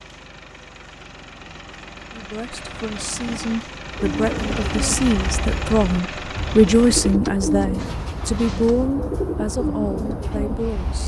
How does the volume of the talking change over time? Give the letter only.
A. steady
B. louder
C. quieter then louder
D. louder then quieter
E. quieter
D.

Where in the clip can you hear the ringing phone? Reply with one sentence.
You can't hear the ringing phone here.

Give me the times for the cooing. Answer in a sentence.
You can hear the cooing from 3.9 to 11.0 s.